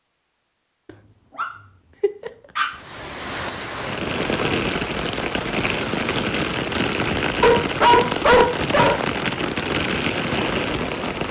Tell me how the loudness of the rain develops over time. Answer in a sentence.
The loudness of the rain stays about the same.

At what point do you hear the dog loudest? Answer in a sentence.
The volume of the dog peaks at 8 seconds.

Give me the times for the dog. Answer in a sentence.
The dog can be heard from 0.8 to 2.8 s and from 7.4 to 9.1 s.